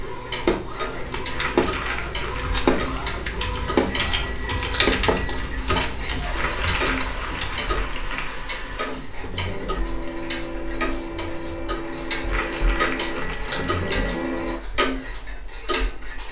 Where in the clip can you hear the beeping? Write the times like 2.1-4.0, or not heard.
3.6-5.5, 12.3-14.4.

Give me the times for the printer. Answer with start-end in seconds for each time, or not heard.
0.0-14.6.